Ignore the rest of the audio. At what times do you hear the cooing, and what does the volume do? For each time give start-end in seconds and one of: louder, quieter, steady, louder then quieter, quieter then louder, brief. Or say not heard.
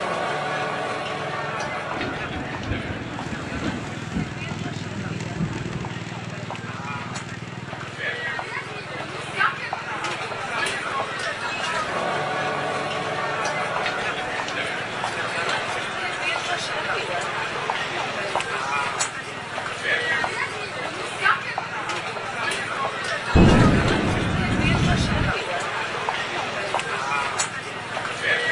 not heard.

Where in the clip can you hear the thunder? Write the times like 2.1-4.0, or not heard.
1.9-5.9, 23.3-25.4.